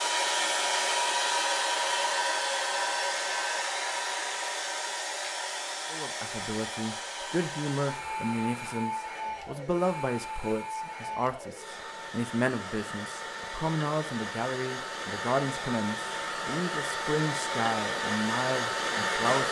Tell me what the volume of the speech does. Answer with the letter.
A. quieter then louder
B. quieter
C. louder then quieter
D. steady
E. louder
D.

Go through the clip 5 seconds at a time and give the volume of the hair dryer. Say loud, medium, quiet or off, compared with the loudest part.
loud, medium, medium, loud.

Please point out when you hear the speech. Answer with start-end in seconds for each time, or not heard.
5.9-19.4.